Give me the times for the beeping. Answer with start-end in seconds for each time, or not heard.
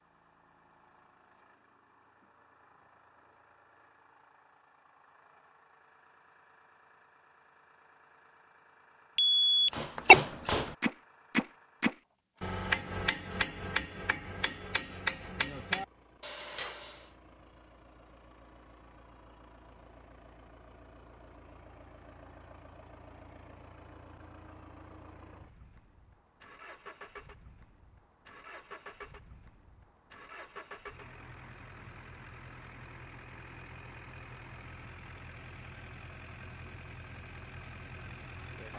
9.2-10.2.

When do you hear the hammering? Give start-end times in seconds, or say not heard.
9.7-17.1.